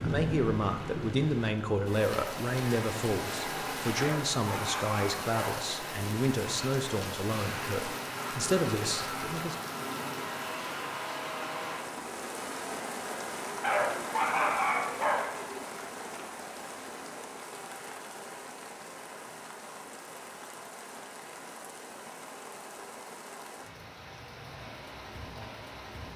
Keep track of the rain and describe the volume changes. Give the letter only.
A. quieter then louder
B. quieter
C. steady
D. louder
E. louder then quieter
B.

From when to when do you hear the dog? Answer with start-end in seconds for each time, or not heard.
4.0-5.5, 13.6-15.2.